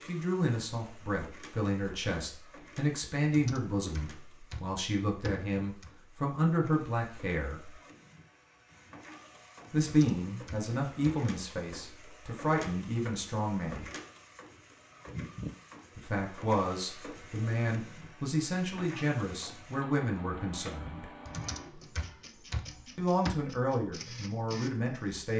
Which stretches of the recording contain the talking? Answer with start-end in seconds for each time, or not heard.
0.0-7.7, 9.7-13.9, 15.9-21.1, 22.9-25.3.